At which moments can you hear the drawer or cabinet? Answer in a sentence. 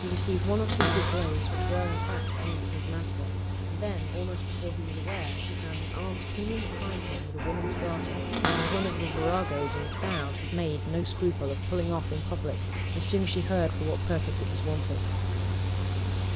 You can hear the drawer or cabinet from 0.7 to 2.6 s and from 8.3 to 10.2 s.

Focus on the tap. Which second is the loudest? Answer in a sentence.
The volume of the tap peaks at 8 seconds.